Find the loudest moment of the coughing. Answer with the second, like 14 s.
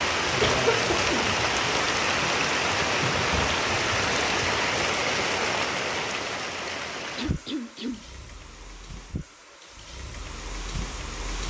1 s.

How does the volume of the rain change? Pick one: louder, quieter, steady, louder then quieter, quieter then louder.
quieter.